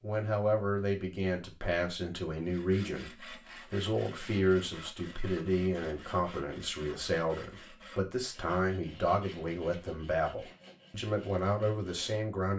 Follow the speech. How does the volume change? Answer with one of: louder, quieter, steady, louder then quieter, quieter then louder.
steady.